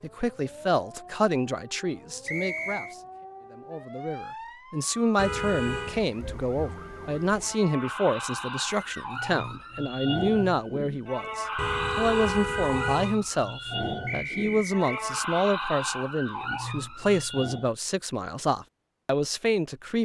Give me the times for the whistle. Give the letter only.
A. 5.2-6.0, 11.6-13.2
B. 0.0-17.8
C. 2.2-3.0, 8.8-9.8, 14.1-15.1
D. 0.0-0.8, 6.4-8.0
C.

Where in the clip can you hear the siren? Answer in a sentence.
You can hear the siren from 0.0 to 17.8 s.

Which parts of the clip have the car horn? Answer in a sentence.
You can hear the car horn from 5.2 to 6.0 s and from 11.6 to 13.2 s.